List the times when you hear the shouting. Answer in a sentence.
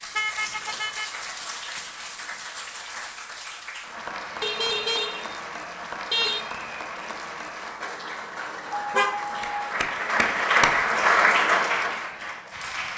The shouting can't be heard in this clip.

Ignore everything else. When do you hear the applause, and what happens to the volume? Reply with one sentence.
You can hear the applause from 0.0 to 12.9 s, getting louder.